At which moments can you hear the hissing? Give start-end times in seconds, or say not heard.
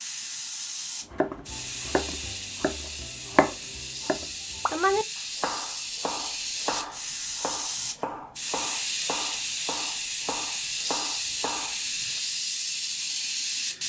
0.0-13.8.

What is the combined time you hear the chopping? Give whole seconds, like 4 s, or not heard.
11 s.